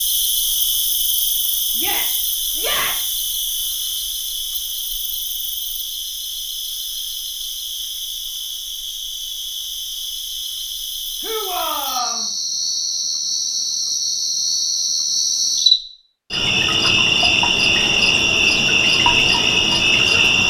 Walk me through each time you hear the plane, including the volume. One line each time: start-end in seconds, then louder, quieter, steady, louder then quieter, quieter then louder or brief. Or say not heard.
not heard.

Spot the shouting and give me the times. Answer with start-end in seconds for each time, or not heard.
1.8-3.1, 11.2-12.2.